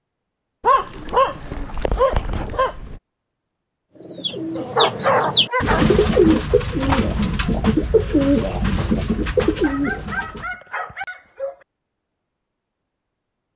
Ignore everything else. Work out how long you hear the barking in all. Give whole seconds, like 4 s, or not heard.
6 s.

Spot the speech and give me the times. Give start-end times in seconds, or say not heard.
not heard.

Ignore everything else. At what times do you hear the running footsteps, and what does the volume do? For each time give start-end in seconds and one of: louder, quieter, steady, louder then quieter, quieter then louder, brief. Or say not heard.
not heard.